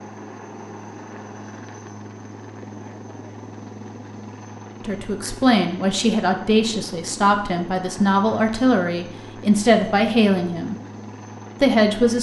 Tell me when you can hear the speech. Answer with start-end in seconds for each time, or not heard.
4.8-10.8, 11.6-12.1.